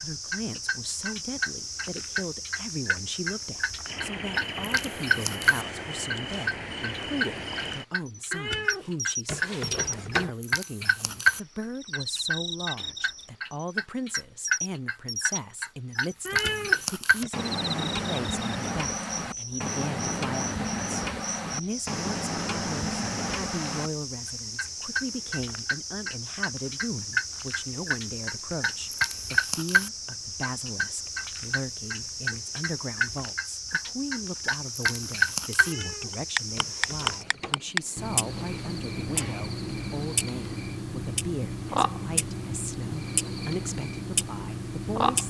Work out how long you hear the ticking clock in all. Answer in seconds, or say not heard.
45 s.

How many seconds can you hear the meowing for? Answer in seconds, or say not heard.
5 s.